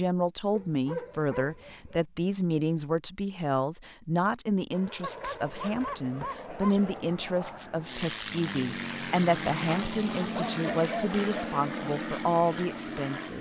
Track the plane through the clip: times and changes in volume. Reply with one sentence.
You can hear the plane from 4.7 to 13.3 s, getting louder.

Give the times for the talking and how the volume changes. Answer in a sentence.
The talking can be heard from 0.0 to 13.3 s, at a steady volume.